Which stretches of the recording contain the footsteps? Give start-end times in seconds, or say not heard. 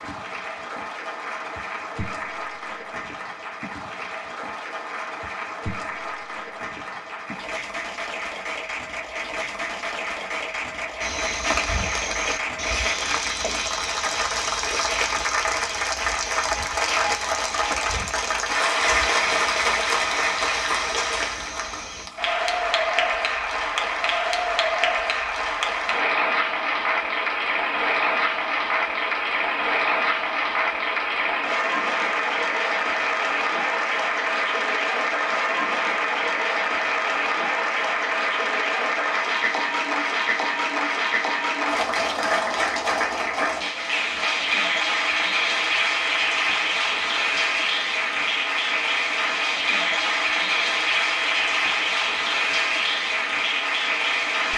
11.0-22.1.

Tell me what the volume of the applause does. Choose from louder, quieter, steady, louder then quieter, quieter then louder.
louder.